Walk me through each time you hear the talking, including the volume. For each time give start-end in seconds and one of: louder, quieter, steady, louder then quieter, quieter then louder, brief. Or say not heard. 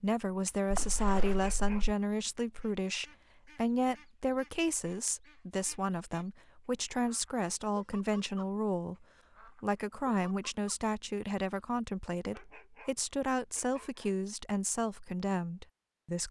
0.0-16.2 steady.